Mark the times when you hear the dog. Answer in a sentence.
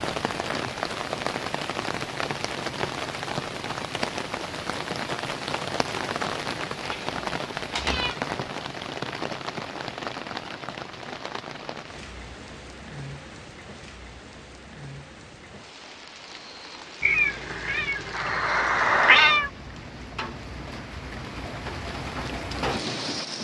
The dog can't be heard in this clip.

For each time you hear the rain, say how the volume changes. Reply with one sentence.
You can hear the rain from 0.0 to 23.3 s, getting quieter then louder.